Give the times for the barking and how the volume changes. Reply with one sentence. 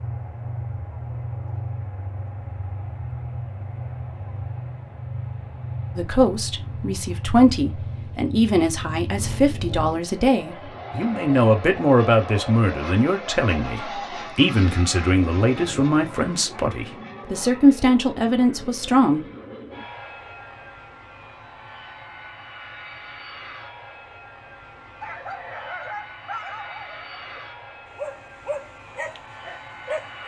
The barking can be heard from 25.0 to 30.2 s, at a steady volume.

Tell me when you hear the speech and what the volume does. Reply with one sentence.
The speech can be heard from 6.0 to 19.2 s, at a steady volume.